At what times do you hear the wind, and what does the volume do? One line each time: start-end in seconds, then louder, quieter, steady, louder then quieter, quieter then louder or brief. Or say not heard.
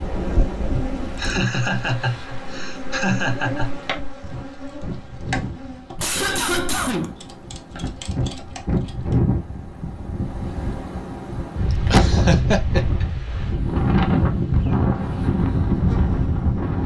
0.0-16.8 louder.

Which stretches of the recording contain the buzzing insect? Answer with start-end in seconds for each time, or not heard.
0.0-9.2, 13.3-16.8.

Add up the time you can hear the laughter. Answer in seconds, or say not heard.
5 s.